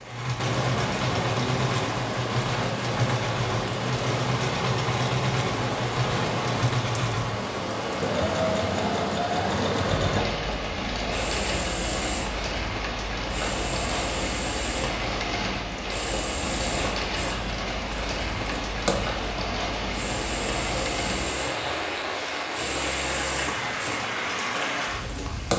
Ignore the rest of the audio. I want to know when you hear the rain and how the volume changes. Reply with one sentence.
The rain can be heard from 0.0 to 25.5 s, at a steady volume.